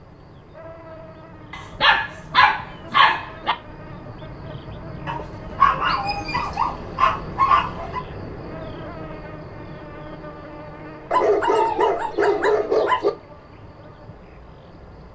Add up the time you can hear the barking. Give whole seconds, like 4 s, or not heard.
7 s.